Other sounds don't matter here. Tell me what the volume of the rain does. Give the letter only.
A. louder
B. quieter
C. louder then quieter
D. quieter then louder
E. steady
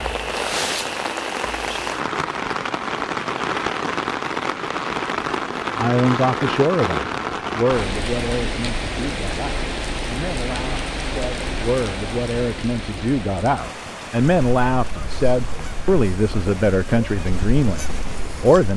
B.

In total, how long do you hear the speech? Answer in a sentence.
The speech can be heard for 13 seconds in total.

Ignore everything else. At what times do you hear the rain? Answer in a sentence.
The rain can be heard from 0.0 to 18.7 s.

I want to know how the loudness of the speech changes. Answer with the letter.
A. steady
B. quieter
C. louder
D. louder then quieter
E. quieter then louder
E.